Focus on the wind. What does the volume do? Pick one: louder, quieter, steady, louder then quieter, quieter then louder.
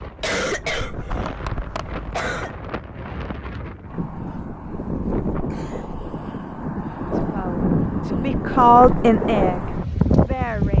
louder.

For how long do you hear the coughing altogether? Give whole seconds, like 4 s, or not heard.
3 s.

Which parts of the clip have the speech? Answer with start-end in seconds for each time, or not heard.
7.1-10.7.